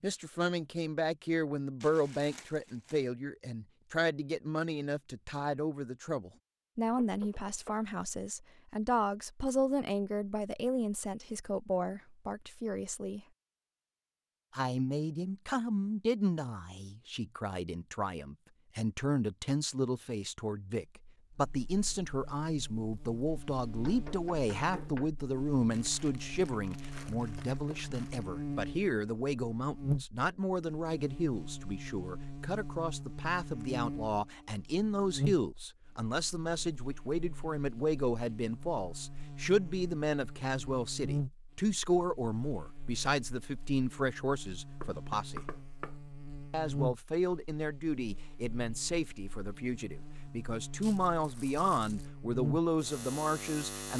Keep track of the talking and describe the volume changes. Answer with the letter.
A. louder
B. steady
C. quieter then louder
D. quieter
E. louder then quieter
B.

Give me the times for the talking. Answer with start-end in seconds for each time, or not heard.
0.0-13.2, 14.6-45.4, 46.5-53.9.